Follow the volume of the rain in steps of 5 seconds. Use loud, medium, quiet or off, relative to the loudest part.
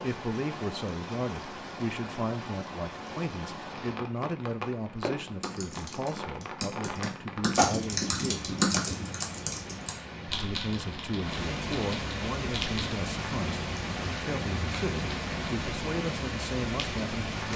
medium, medium, loud, loud.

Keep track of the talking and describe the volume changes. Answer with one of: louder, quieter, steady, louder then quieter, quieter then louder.
steady.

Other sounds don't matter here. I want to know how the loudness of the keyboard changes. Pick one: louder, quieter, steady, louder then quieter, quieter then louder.
louder then quieter.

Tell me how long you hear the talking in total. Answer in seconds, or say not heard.
16 s.